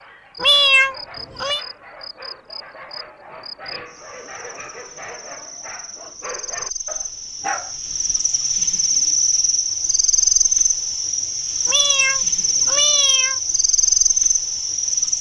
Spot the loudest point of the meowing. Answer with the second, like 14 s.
1 s.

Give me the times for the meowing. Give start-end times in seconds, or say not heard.
0.4-1.6, 11.7-13.4.